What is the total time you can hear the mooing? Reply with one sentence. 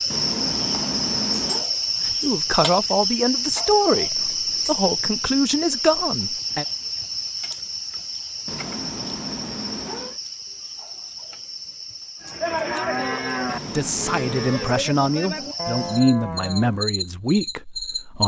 The mooing can be heard for 5 seconds in total.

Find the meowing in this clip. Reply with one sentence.
The meowing can be heard from 0.1 to 1.6 s, from 8.4 to 10.2 s and from 13.4 to 14.7 s.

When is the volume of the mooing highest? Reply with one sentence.
The loudest moment of the mooing is at 13 seconds.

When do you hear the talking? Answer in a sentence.
The talking can be heard from 2.0 to 6.7 s and from 13.7 to 18.2 s.